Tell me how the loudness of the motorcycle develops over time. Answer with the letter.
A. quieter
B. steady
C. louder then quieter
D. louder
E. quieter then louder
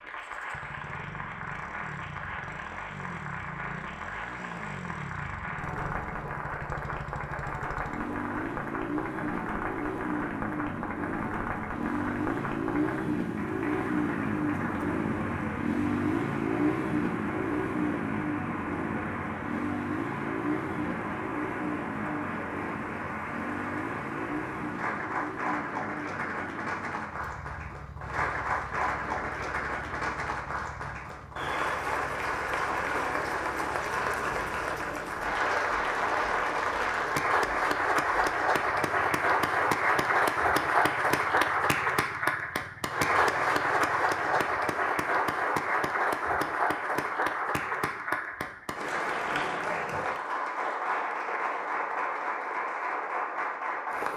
C.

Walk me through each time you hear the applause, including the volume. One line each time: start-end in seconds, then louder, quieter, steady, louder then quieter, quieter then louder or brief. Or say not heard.
0.0-54.1 louder.